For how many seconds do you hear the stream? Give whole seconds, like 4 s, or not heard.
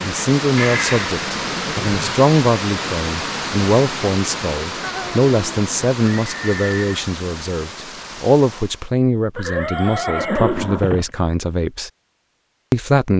9 s.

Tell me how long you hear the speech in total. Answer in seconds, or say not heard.
12 s.